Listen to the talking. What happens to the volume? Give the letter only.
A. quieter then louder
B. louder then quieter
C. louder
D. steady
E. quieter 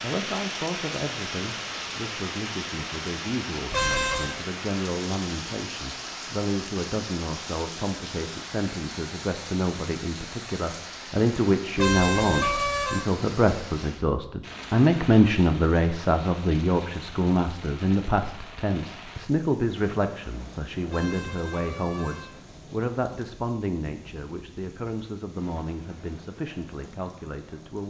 B.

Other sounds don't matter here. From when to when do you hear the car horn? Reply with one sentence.
The car horn can be heard from 3.7 to 4.3 s, from 11.8 to 13.1 s and from 20.9 to 22.3 s.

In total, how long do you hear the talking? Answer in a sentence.
You can hear the talking for 28 seconds altogether.